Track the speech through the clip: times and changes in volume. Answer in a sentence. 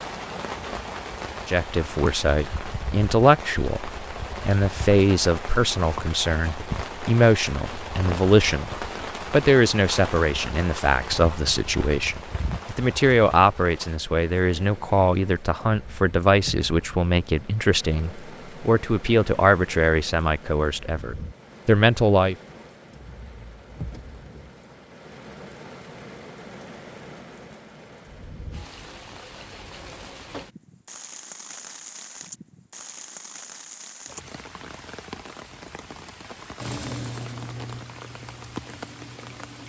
You can hear the speech from 1.4 to 22.4 s, at a steady volume.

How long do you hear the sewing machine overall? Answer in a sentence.
The sewing machine can be heard for 3 seconds in total.